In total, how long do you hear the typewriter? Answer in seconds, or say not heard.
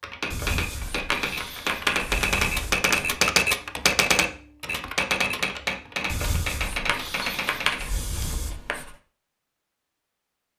8 s.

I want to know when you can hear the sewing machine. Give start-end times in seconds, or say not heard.
not heard.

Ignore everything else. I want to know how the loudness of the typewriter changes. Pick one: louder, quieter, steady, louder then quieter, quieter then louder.
louder then quieter.